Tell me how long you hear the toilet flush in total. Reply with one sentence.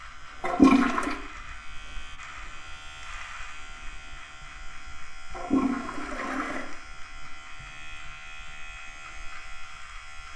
You can hear the toilet flush for 2 seconds altogether.